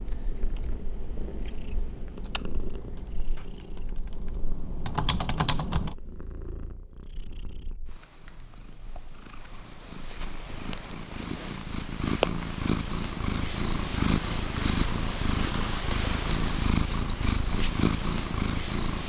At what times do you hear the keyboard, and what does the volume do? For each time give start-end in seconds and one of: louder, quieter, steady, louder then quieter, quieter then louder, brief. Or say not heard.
0.1-6.0 louder.